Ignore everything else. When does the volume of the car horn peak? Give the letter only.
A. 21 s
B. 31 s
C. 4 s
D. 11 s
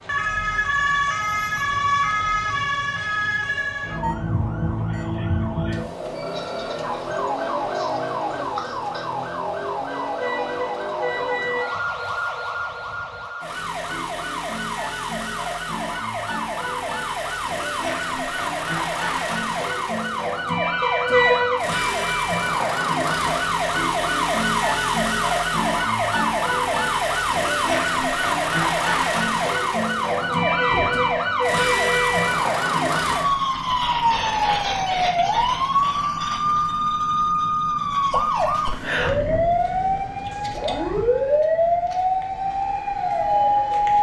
A.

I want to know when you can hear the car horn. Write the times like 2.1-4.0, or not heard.
9.9-11.7, 20.8-21.6, 30.5-32.3.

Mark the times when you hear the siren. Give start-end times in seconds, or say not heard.
0.0-43.9.